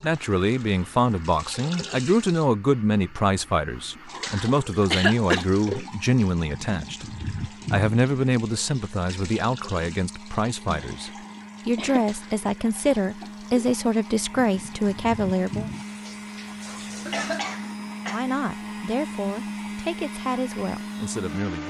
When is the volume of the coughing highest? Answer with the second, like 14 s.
5 s.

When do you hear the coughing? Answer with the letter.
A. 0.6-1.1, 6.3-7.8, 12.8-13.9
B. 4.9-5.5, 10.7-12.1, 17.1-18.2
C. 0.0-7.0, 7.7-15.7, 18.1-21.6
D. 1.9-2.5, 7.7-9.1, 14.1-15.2
B.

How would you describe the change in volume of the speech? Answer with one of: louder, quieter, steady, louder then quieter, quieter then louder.
quieter.